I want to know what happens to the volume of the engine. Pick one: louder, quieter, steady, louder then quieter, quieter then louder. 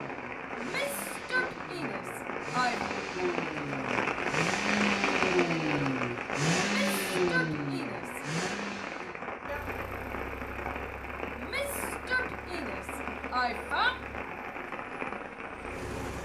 louder then quieter.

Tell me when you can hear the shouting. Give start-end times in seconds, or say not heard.
0.6-2.8, 6.5-8.2, 11.3-14.0.